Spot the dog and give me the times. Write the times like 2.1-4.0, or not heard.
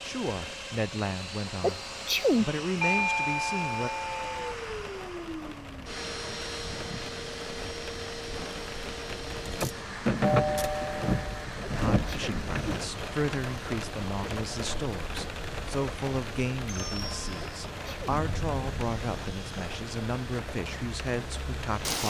not heard.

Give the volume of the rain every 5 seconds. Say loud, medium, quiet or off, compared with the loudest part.
quiet, medium, loud, medium, medium.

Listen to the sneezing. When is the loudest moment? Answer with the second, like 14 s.
2 s.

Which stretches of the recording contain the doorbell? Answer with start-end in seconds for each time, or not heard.
2.8-4.5, 10.2-11.4, 16.6-17.5.